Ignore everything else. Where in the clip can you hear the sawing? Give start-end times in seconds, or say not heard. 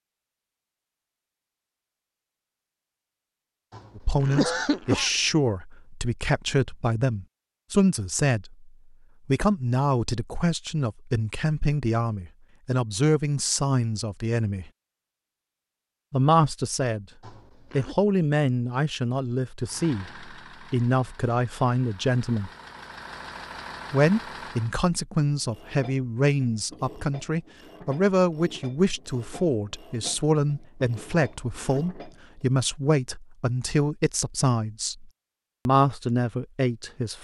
not heard.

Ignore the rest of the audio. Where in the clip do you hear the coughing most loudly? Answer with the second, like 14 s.
5 s.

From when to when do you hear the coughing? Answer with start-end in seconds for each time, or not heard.
3.7-5.1, 17.2-17.9, 31.1-31.9.